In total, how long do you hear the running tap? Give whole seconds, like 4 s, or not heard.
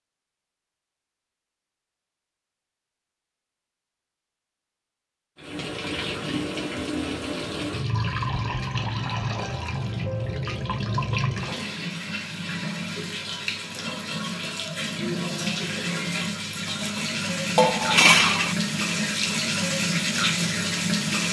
16 s.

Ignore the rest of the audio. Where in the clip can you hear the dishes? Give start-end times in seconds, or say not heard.
17.6-18.6.